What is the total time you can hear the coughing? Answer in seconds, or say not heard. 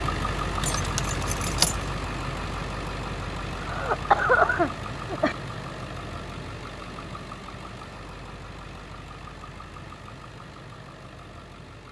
2 s.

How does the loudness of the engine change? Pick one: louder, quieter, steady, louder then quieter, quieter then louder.
quieter.